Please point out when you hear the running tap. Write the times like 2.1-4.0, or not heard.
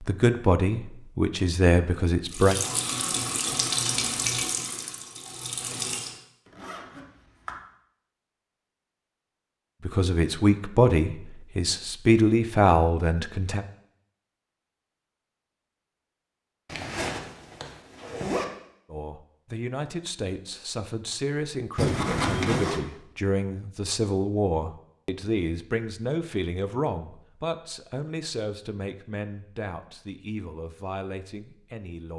2.2-6.2.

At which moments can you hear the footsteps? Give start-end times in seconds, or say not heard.
not heard.